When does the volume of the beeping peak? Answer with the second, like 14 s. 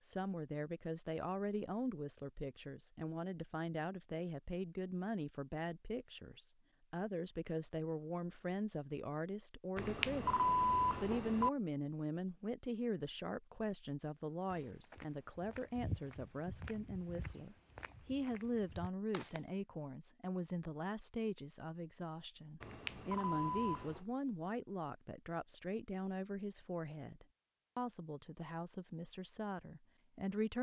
11 s.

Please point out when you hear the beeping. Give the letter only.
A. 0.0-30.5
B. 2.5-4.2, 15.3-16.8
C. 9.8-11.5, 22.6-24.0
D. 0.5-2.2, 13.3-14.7
C.